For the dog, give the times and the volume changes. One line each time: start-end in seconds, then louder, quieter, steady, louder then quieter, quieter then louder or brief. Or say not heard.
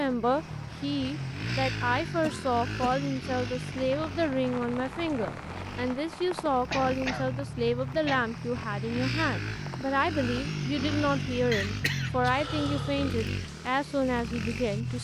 not heard.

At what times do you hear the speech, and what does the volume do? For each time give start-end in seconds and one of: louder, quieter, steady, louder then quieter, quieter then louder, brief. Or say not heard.
0.0-14.9 steady.